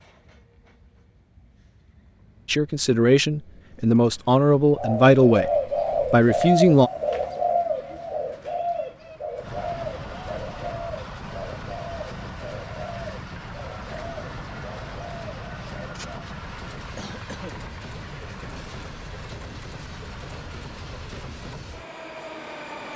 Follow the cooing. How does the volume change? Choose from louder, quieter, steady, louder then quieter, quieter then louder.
quieter.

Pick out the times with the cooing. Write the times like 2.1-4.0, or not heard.
4.8-16.3.